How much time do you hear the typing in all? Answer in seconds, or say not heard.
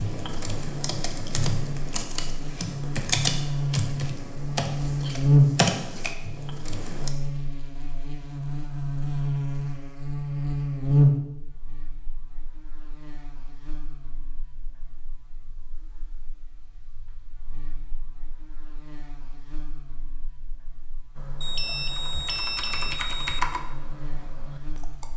11 s.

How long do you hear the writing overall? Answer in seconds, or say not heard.
not heard.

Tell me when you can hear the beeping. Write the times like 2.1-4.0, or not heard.
21.4-23.4.